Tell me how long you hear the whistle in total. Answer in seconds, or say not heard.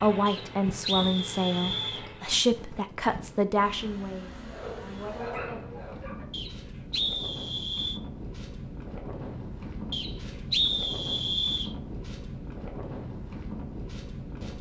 5 s.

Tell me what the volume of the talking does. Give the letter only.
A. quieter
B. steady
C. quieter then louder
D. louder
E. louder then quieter
A.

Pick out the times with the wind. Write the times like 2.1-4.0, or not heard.
0.2-14.5.